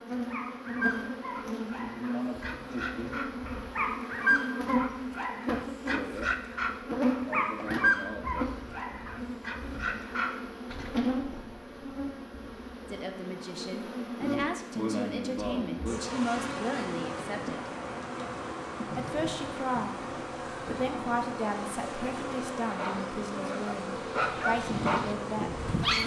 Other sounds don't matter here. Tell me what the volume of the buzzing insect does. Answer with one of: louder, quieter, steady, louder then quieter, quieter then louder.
steady.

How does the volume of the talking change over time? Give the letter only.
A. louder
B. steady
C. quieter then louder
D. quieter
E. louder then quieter
B.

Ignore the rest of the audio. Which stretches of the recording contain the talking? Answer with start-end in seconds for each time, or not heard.
12.9-17.7, 18.9-26.0.